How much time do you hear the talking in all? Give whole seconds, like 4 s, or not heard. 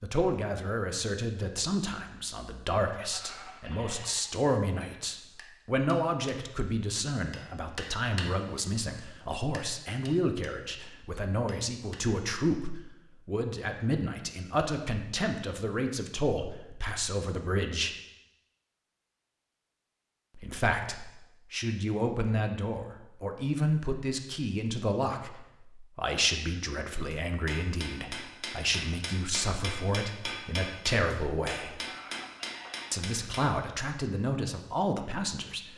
32 s.